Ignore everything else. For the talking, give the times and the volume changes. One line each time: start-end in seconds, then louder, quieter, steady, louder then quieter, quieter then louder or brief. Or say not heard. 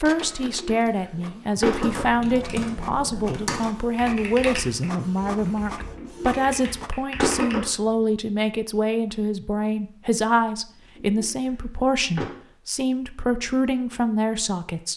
0.0-14.9 steady.